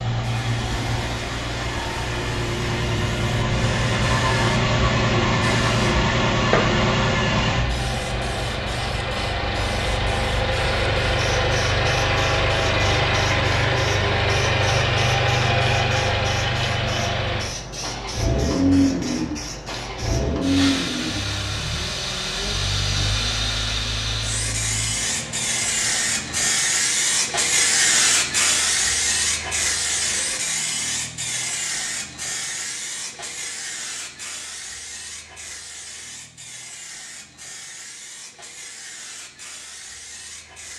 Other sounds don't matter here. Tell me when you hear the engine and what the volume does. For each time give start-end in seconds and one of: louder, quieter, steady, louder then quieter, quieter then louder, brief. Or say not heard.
0.0-26.6 quieter.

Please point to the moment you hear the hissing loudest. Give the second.
28 s.